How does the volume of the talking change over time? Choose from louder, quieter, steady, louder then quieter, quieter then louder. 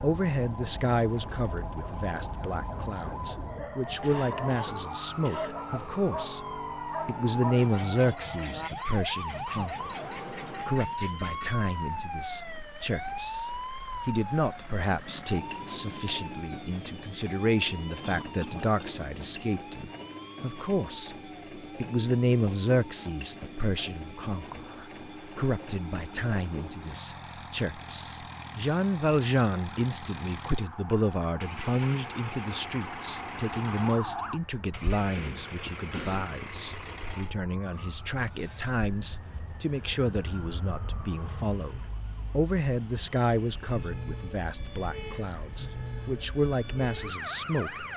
steady.